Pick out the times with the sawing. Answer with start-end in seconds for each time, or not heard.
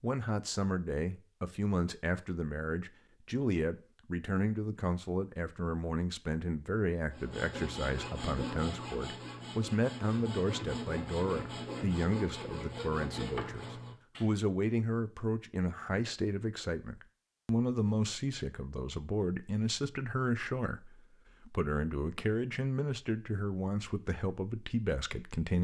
7.1-14.3.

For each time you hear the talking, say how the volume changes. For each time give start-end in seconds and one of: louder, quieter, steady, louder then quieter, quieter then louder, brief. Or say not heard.
0.0-25.5 steady.